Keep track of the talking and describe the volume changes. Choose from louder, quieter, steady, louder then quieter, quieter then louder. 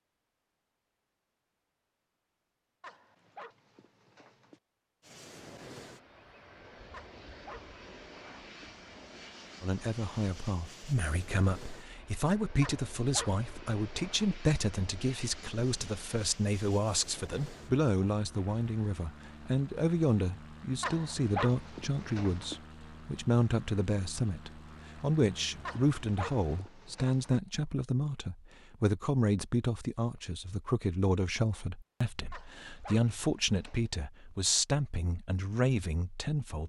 steady.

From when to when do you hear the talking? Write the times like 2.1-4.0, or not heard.
9.6-36.6.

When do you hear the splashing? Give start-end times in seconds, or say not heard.
not heard.